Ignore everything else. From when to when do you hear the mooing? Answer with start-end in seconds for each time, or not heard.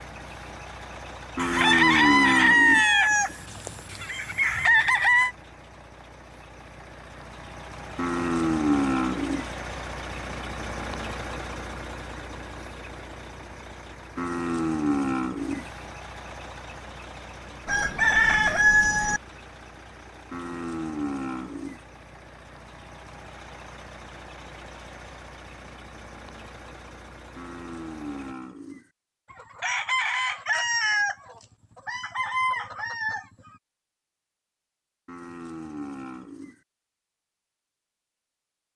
1.4-2.9, 8.0-9.5, 14.2-15.7, 20.3-21.8, 27.4-28.9, 35.0-36.6.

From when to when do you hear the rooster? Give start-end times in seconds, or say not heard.
1.4-5.3, 17.6-19.2, 29.3-33.5.